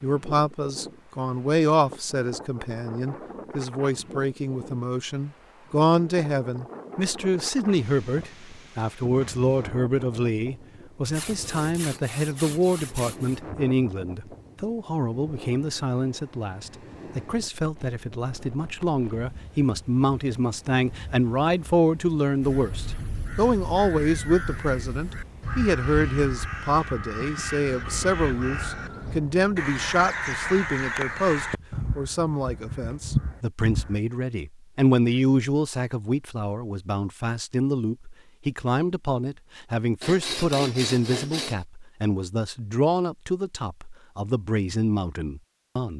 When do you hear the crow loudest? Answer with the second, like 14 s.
33 s.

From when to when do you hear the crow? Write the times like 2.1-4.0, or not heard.
22.4-34.0.